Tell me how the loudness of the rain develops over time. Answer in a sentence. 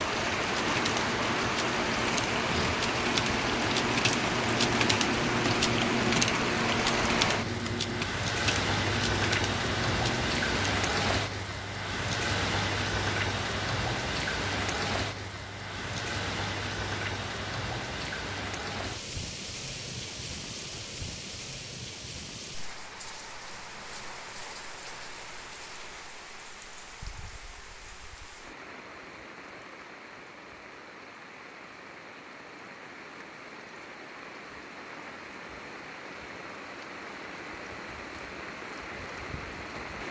The loudness of the rain goes down.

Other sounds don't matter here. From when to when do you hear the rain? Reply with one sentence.
You can hear the rain from 0.0 to 40.0 s.